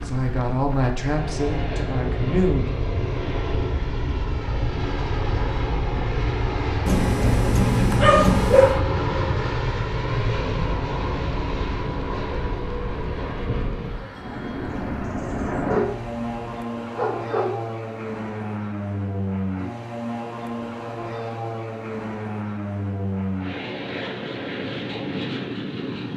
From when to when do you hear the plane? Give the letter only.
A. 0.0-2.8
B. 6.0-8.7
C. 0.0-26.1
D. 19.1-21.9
C.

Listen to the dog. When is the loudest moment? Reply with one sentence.
The volume of the dog peaks at 8 seconds.